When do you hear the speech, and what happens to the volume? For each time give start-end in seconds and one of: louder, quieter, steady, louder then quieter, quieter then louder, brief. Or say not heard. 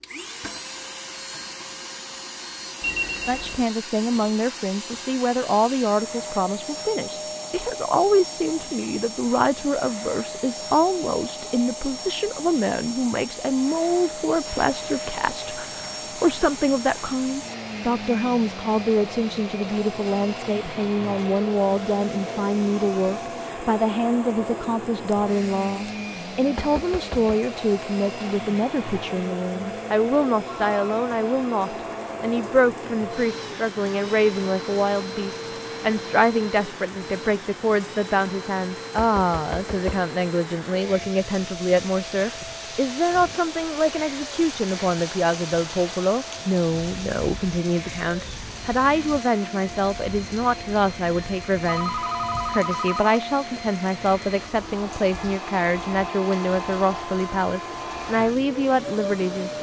3.2-59.5 steady.